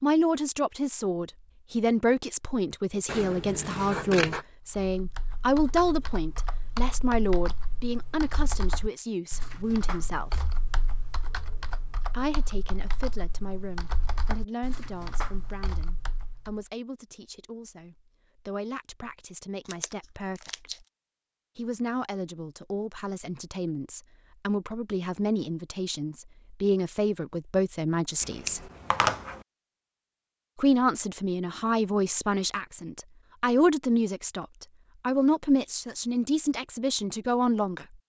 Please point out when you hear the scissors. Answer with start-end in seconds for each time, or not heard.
3.0-4.5, 19.6-20.8, 28.2-29.4.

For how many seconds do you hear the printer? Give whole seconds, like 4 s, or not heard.
not heard.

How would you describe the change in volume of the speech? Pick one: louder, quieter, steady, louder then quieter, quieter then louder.
quieter then louder.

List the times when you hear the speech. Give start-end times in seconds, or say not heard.
0.0-10.4, 12.1-20.9, 21.6-28.7, 30.6-37.9.